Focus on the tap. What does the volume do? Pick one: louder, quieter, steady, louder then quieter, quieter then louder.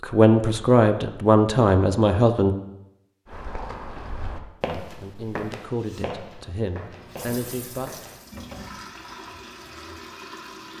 louder.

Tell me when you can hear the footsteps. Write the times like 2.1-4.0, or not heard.
3.2-8.2.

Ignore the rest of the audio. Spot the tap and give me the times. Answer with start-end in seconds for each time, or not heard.
5.6-10.7.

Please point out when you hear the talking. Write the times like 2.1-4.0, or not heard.
0.0-2.5, 4.7-7.9.